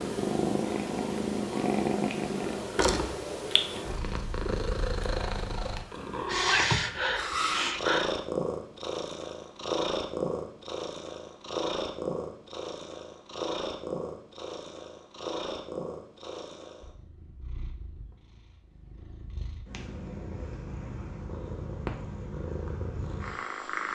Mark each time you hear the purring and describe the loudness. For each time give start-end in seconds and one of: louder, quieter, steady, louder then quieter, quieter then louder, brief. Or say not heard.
0.0-23.8 quieter.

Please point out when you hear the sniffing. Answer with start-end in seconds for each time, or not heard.
6.2-8.2.